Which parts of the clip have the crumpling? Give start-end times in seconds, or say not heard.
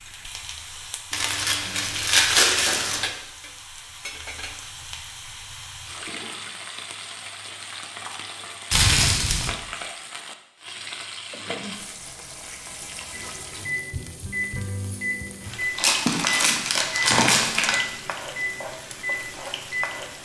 1.1-3.1, 8.7-9.5, 15.8-17.8.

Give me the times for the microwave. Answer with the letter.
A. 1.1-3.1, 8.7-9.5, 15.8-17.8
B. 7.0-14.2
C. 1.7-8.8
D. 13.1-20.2
D.